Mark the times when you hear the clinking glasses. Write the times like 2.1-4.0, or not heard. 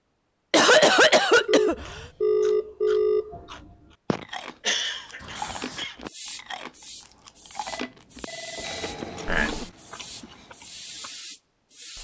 not heard.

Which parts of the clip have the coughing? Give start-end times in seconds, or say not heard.
0.5-2.0, 4.1-6.1, 8.7-9.7.